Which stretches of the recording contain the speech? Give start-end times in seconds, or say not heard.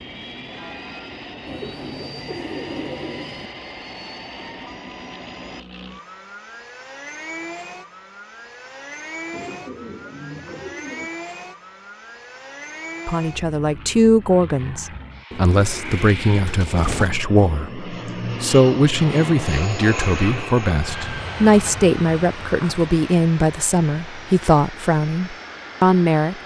13.1-26.4.